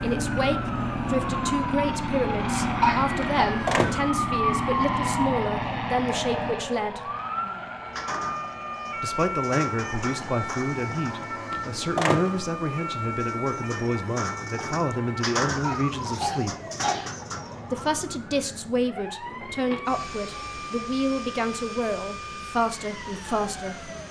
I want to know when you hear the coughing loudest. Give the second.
3 s.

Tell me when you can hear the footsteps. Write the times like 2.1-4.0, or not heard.
not heard.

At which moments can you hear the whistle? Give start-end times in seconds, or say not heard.
not heard.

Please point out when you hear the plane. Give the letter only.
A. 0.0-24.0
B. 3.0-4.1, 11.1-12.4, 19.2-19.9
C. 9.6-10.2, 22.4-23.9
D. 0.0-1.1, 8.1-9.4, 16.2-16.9
A.